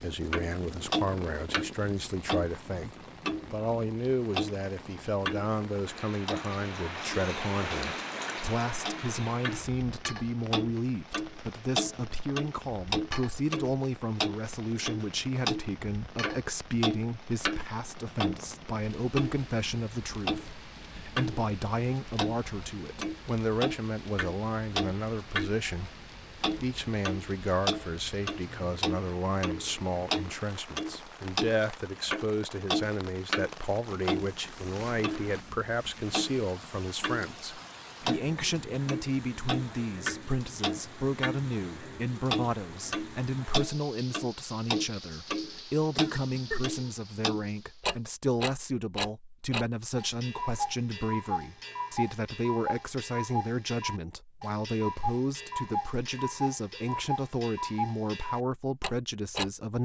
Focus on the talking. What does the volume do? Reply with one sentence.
The loudness of the talking stays about the same.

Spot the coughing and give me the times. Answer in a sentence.
The coughing can be heard from 46.0 to 46.8 s.